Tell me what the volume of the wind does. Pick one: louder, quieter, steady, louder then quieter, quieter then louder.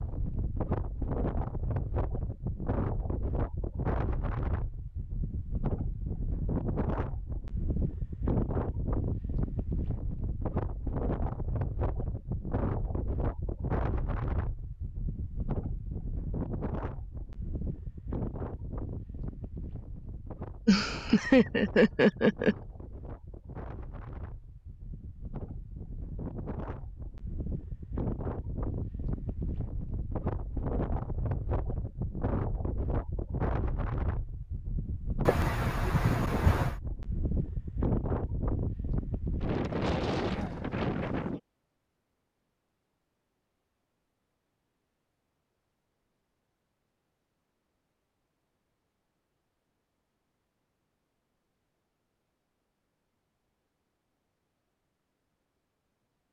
quieter then louder.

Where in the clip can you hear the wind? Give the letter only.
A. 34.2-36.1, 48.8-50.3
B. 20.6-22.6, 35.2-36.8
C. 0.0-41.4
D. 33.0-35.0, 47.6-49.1
C.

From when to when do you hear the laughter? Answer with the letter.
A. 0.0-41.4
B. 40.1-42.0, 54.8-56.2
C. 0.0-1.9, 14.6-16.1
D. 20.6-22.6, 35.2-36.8
D.